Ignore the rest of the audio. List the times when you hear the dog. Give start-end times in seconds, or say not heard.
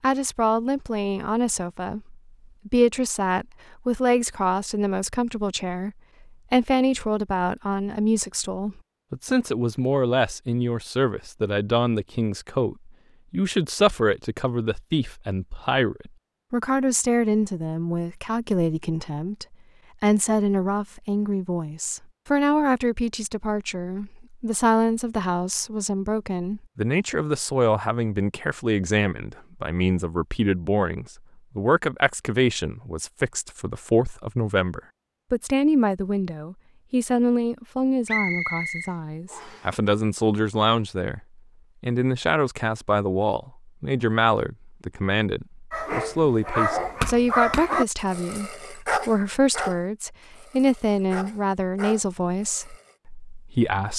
45.7-53.0.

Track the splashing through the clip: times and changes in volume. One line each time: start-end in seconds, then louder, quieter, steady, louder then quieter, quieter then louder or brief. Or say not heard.
not heard.